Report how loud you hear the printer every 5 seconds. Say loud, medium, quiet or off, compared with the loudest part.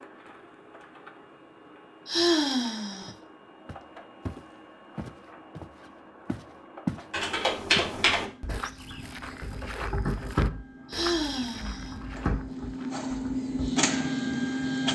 quiet, quiet, loud.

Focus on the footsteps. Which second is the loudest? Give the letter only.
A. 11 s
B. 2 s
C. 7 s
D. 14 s
C.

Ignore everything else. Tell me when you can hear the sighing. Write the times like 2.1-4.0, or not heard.
2.0-3.1, 10.8-11.9.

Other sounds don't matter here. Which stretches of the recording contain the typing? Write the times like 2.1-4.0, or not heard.
7.1-13.7.